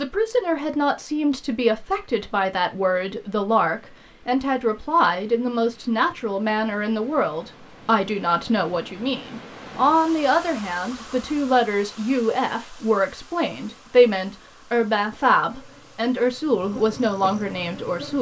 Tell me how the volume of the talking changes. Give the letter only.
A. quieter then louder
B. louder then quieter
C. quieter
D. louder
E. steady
E.